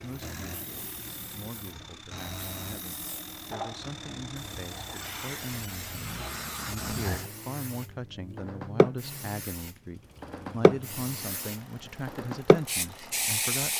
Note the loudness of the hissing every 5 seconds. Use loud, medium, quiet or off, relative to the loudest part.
quiet, medium, loud.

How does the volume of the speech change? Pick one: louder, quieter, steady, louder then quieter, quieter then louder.
louder.